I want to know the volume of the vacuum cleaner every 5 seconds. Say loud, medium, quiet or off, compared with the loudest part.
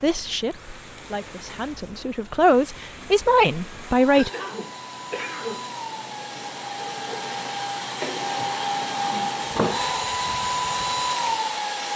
quiet, loud, loud.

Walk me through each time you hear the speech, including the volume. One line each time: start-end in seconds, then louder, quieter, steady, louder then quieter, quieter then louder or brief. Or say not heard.
0.0-4.3 louder.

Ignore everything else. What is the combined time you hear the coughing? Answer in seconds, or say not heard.
2 s.